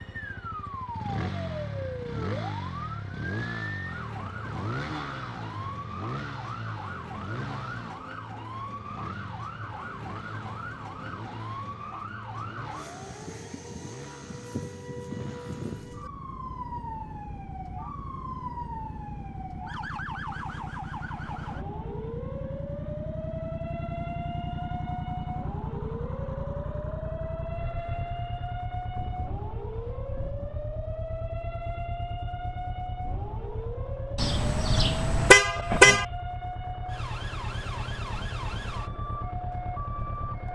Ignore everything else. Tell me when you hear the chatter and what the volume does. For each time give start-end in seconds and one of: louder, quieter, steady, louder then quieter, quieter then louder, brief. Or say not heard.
not heard.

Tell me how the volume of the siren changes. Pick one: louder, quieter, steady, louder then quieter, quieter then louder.
steady.